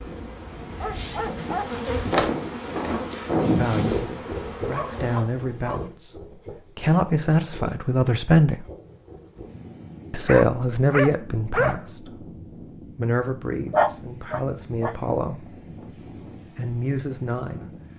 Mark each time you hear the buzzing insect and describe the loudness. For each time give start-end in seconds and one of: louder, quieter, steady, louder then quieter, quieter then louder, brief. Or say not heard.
0.0-5.3 louder then quieter.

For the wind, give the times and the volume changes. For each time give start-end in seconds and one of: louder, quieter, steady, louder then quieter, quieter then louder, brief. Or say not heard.
0.0-17.9 quieter.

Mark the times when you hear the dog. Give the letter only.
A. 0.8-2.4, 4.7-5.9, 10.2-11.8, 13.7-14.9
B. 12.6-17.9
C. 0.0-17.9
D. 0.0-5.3
A.